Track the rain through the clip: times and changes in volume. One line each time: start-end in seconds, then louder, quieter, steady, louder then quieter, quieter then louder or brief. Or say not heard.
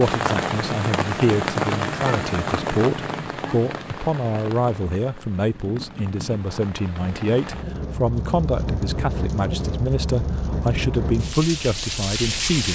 0.0-12.6 quieter then louder.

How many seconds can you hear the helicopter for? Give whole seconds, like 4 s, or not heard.
not heard.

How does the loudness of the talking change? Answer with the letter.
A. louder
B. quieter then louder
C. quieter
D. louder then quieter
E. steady
E.